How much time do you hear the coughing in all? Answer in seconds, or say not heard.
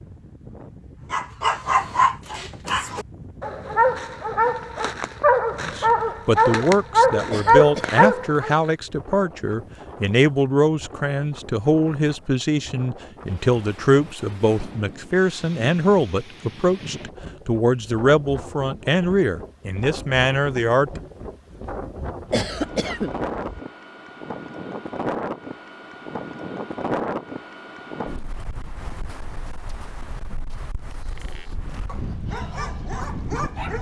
2 s.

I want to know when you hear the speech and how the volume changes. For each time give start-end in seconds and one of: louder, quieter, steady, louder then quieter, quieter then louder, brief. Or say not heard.
5.6-21.0 steady.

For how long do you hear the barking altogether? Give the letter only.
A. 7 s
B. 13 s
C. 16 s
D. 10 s
D.